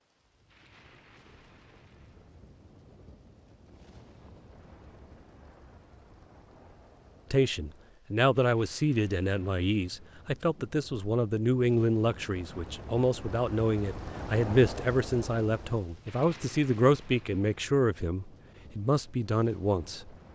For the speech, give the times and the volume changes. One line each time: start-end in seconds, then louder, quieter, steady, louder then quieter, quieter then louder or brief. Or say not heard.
7.3-20.1 steady.